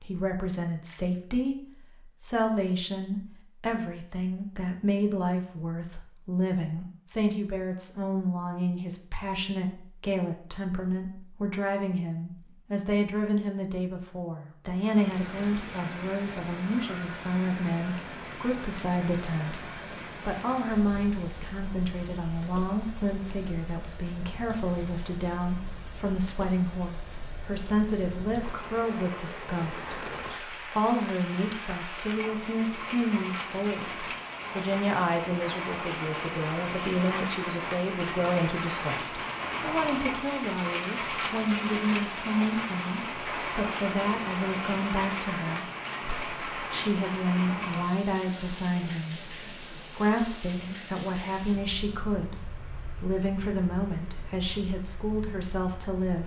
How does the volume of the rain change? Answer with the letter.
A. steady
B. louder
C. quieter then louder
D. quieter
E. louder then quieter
E.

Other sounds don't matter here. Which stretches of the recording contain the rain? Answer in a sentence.
The rain can be heard from 14.7 to 56.2 s.